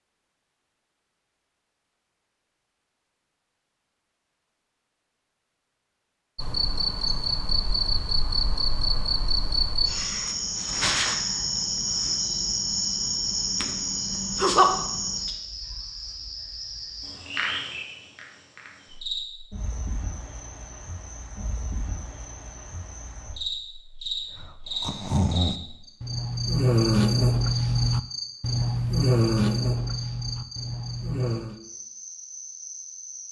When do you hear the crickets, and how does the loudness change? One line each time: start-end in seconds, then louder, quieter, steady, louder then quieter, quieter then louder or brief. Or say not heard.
6.3-33.2 quieter.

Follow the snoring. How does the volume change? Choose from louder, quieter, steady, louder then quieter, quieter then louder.
louder then quieter.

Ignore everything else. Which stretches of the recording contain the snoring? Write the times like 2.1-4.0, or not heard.
24.1-31.6.